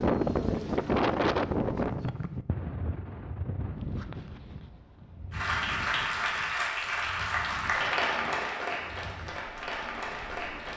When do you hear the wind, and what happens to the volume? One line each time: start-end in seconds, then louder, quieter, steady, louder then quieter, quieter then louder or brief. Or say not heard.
0.0-10.7 quieter.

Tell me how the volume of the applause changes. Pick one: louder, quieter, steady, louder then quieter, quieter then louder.
quieter.